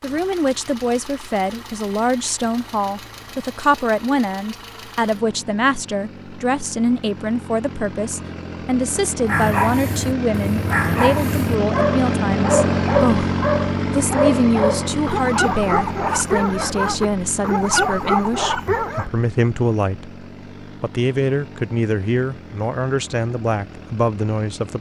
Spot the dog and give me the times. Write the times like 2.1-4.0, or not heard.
9.2-19.1.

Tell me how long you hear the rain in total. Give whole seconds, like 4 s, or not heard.
not heard.